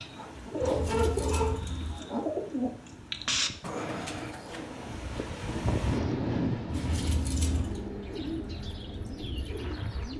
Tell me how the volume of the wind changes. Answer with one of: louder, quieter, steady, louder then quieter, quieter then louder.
louder then quieter.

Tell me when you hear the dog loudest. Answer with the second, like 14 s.
1 s.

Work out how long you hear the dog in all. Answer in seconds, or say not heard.
2 s.